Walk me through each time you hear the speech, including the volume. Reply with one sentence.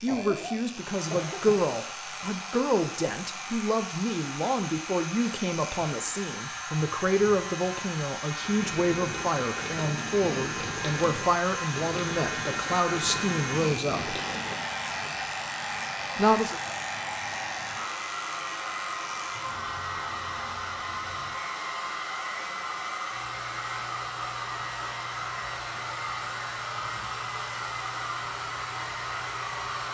The speech can be heard from 0.0 to 14.2 s, at a steady volume; and briefly from 16.1 to 16.6 s.